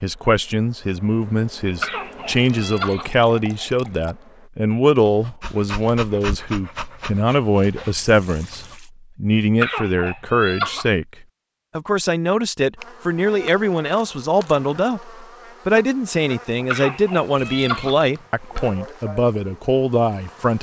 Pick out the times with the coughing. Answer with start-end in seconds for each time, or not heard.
1.8-3.0, 9.6-10.8, 16.7-18.6.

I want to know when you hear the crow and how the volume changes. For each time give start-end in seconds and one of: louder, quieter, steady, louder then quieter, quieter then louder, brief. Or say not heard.
not heard.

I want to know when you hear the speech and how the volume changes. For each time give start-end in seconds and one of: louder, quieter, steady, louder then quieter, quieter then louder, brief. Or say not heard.
0.0-20.5 steady.